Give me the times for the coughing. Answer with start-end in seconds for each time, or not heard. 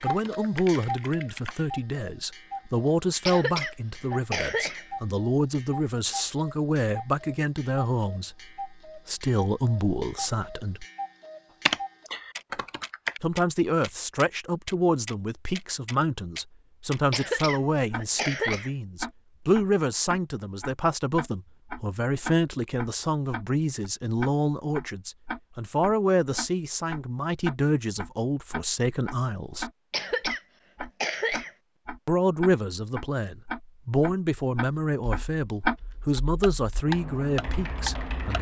3.2-4.8, 17.1-18.7, 29.9-31.5.